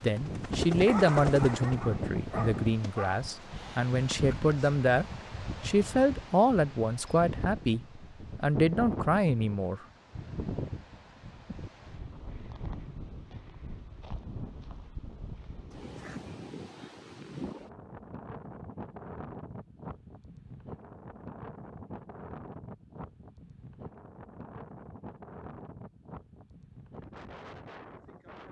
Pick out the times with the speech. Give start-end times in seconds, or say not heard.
0.0-9.8.